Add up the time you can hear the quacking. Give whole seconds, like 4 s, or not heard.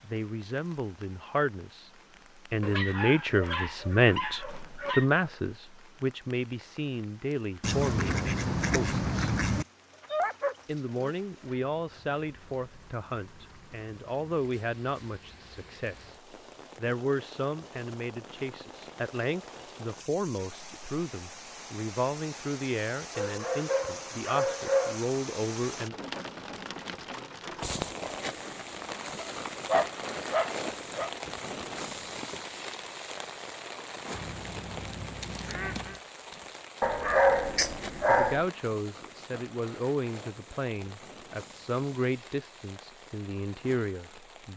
4 s.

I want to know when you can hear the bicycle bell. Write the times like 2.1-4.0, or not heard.
not heard.